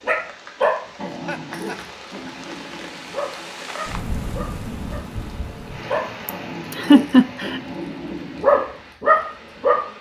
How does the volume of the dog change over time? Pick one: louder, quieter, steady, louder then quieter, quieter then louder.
quieter then louder.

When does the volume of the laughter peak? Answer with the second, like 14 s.
7 s.